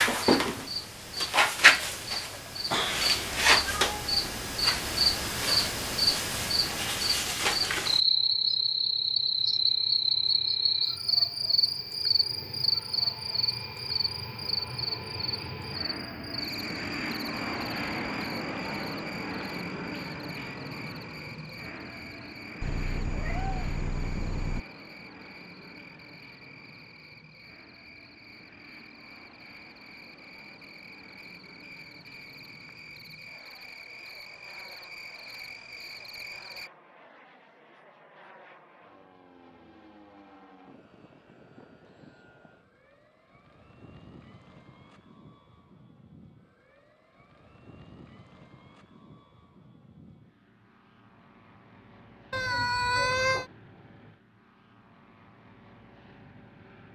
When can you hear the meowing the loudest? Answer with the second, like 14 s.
53 s.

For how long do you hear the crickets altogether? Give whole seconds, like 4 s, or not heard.
37 s.